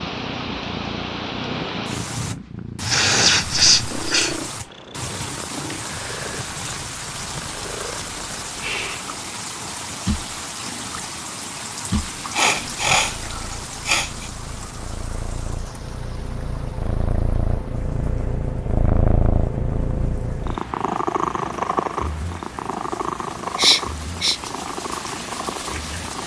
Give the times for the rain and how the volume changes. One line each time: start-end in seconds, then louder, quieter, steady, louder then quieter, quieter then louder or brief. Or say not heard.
0.0-26.2 quieter then louder.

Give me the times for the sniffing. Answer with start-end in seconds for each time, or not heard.
2.8-4.7, 12.3-14.3, 23.6-24.4.